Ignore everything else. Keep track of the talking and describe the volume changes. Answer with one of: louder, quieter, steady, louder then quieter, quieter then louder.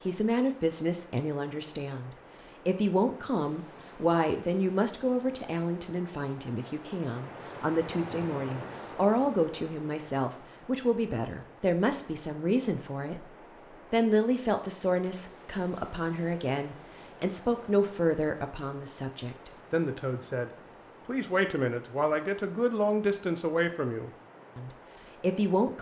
steady.